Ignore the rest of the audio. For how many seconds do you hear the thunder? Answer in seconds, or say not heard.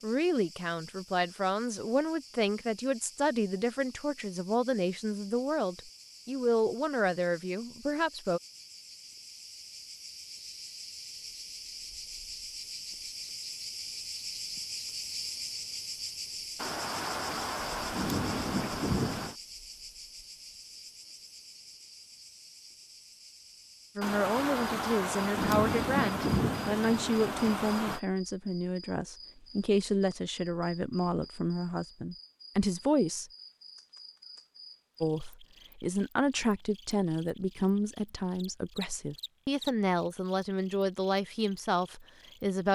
7 s.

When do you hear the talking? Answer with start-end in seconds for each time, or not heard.
0.0-8.4, 23.9-33.3, 35.0-42.7.